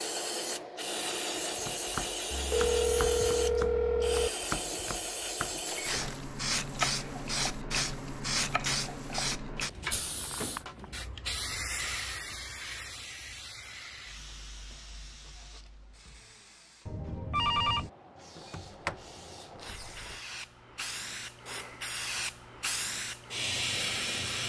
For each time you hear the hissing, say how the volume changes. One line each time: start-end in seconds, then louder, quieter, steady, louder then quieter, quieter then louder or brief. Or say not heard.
0.0-24.4 quieter then louder.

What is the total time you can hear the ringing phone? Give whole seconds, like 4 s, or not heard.
4 s.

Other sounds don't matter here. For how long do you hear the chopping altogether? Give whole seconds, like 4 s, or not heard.
9 s.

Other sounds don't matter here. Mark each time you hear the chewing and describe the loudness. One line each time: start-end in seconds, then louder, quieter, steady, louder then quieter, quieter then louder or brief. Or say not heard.
not heard.